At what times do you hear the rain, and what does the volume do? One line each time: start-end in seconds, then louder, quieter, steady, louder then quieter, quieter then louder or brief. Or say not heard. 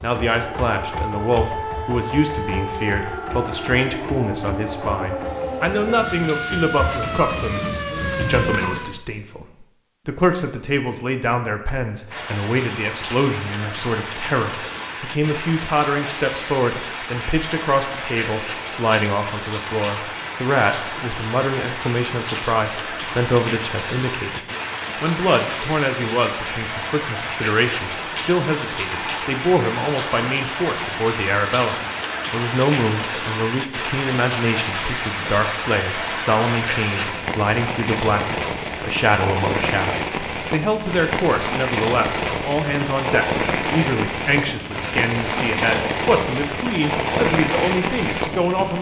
12.1-48.7 louder.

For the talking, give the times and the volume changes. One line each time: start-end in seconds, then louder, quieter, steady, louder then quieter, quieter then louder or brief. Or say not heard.
0.0-24.4 steady
25.0-48.7 steady.